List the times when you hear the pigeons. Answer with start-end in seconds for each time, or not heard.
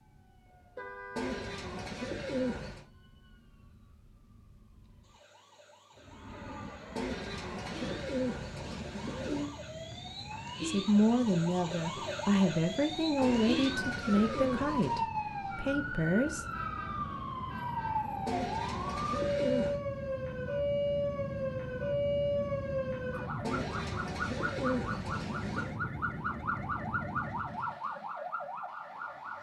1.1-2.9, 7.0-9.5, 13.2-15.1, 18.2-19.8, 23.4-25.8.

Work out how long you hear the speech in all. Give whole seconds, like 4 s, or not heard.
6 s.